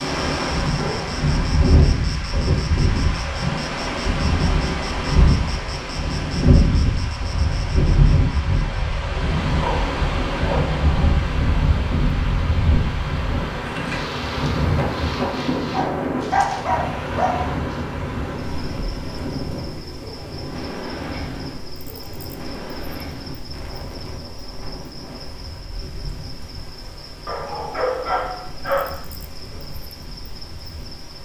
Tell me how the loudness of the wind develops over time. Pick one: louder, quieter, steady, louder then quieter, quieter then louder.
quieter.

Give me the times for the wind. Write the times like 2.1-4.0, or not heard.
0.0-31.1.